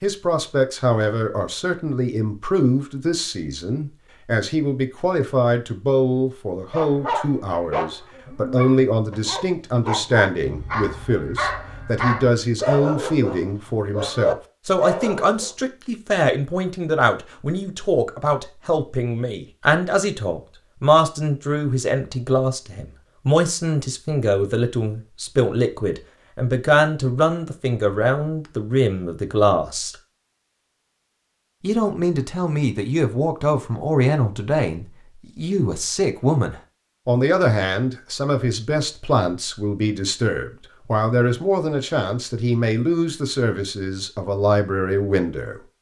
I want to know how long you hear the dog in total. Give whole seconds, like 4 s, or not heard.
9 s.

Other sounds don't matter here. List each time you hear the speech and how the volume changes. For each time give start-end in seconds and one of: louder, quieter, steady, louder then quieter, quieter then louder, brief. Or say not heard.
0.0-29.9 steady
31.6-45.6 steady.